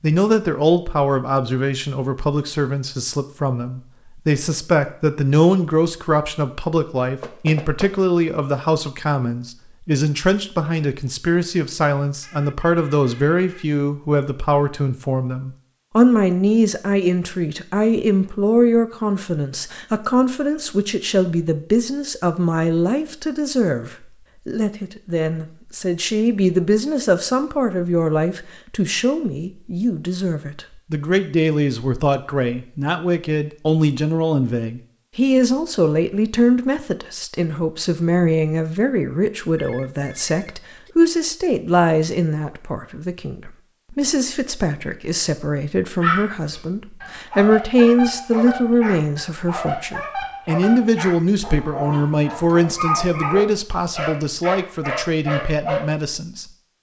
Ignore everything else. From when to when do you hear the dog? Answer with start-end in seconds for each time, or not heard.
46.0-55.9.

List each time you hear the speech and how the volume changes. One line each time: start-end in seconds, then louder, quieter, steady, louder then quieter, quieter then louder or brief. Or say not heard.
0.0-56.5 steady.